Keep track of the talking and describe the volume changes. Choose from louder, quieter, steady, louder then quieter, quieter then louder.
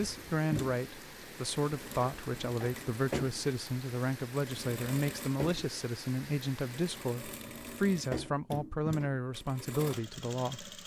steady.